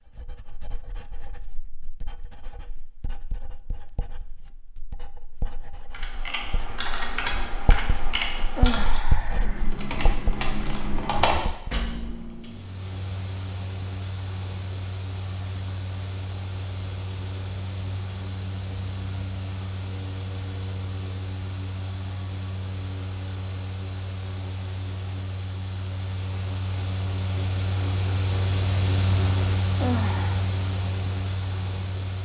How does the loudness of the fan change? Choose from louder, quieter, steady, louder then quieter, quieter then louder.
louder.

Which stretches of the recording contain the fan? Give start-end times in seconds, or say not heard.
12.3-32.2.